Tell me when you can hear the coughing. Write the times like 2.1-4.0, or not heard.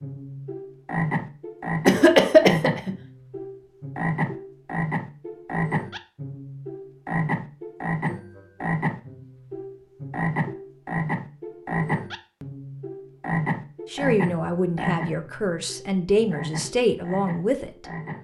1.9-3.0.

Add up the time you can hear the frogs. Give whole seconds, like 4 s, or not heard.
18 s.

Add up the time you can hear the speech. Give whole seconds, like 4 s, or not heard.
4 s.